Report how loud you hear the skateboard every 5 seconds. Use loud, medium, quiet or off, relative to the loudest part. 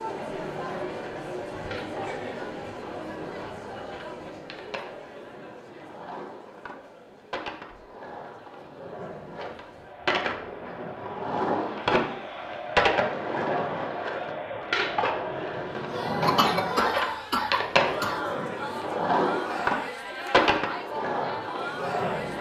quiet, quiet, loud, loud, loud.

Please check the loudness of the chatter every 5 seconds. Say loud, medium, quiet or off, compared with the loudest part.
loud, quiet, loud, loud, loud.